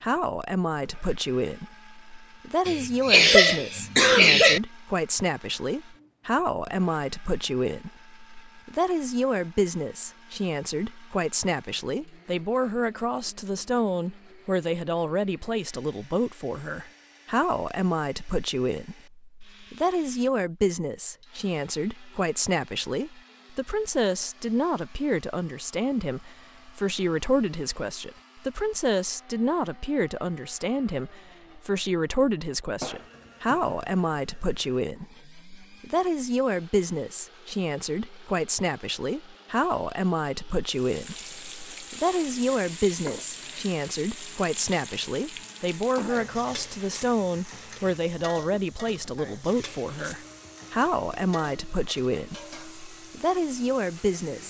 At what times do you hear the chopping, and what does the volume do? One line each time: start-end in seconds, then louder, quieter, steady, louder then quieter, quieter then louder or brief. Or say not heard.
not heard.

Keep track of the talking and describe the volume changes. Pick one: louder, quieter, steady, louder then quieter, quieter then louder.
steady.